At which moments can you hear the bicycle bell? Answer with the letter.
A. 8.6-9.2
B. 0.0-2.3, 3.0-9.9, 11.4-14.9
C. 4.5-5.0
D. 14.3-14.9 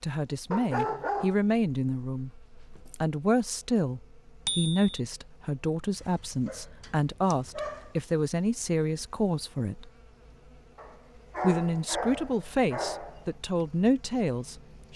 C.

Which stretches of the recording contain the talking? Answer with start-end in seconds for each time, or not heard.
0.0-2.3, 3.0-9.9, 11.4-14.9.